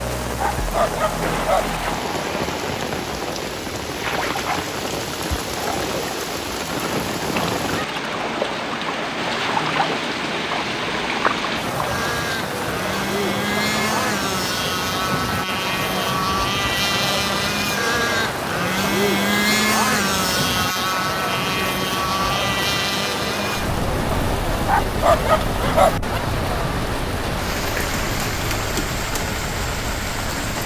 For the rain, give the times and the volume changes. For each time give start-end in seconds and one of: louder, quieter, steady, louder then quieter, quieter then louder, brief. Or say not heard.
0.0-30.6 steady.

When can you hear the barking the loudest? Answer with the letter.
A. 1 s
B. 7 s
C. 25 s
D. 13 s
C.